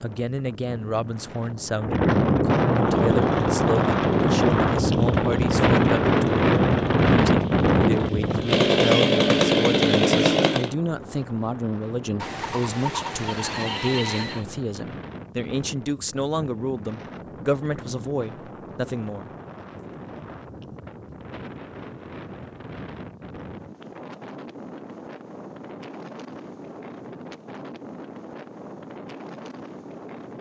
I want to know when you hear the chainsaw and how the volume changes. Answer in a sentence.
You can hear the chainsaw from 2.7 to 10.8 s, getting louder.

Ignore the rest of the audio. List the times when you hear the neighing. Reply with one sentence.
You can hear the neighing from 12.2 to 14.4 s.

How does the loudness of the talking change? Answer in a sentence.
The loudness of the talking stays about the same.